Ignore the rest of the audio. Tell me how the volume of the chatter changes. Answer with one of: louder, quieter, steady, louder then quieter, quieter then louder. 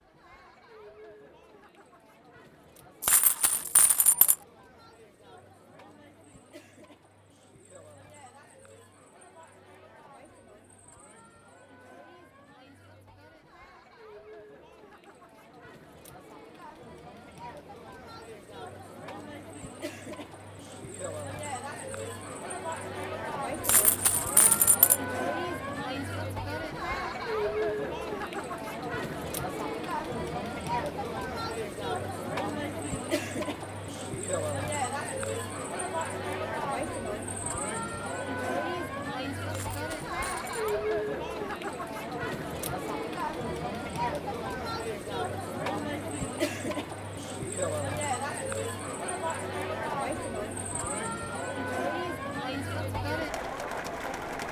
louder.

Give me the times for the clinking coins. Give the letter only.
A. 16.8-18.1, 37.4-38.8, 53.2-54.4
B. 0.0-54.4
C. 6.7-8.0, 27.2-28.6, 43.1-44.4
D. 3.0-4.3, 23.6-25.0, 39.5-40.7
D.